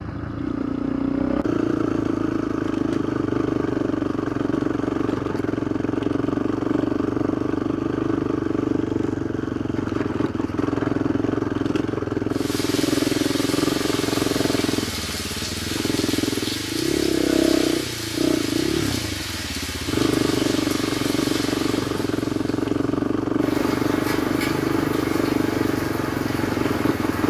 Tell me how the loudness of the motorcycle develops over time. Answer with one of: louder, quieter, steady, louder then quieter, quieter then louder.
steady.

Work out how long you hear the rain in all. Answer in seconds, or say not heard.
15 s.